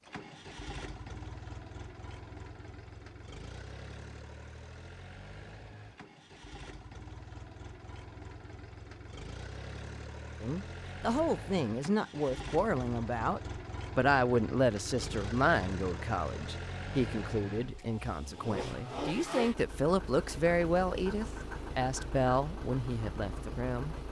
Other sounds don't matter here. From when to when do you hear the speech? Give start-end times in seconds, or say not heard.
10.4-23.9.